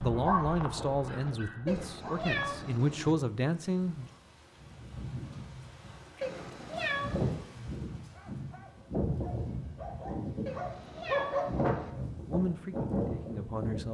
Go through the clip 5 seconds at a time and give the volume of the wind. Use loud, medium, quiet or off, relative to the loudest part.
quiet, loud, loud.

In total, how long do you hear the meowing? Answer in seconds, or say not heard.
4 s.